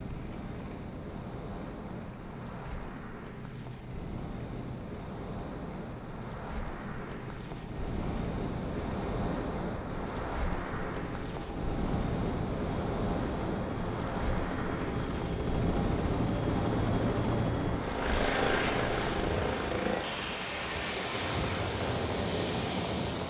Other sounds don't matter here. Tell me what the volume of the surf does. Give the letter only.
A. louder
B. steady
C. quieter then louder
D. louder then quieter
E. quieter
A.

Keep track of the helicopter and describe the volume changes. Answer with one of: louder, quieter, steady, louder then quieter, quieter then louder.
louder.